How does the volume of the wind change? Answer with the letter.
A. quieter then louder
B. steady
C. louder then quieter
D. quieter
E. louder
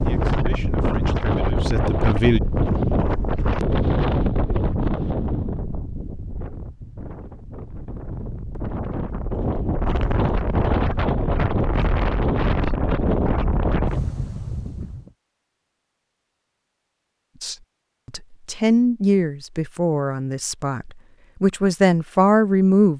A.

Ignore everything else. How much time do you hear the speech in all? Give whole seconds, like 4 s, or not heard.
8 s.